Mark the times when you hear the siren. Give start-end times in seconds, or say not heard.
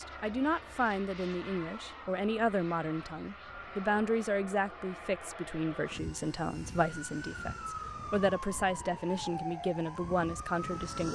6.8-11.1.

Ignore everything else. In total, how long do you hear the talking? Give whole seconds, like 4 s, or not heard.
11 s.